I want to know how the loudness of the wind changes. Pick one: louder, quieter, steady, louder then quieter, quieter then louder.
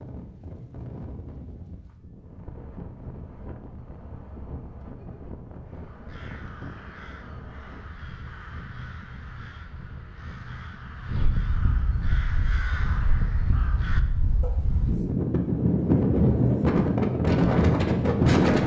louder.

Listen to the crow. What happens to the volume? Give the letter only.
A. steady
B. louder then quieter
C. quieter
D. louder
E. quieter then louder
D.